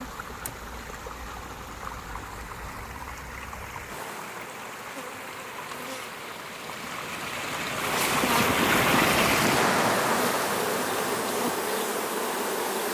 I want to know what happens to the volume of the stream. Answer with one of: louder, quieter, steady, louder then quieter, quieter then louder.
louder then quieter.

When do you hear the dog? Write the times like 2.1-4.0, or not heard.
not heard.